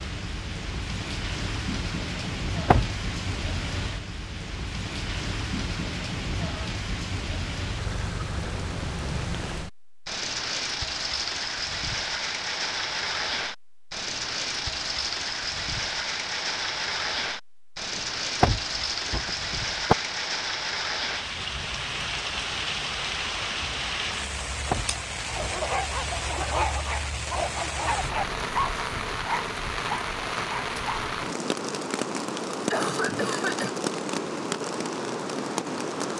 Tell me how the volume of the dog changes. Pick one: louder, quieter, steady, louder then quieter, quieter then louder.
steady.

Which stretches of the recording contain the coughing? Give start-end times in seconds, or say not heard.
32.7-33.8.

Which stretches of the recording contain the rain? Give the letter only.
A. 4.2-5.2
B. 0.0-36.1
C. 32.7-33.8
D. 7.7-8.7
B.